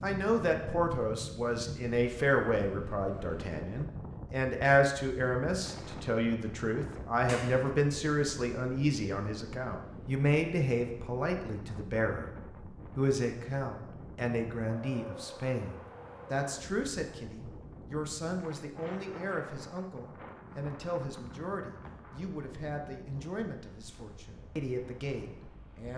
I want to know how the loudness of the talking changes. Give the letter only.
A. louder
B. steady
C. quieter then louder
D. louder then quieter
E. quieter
E.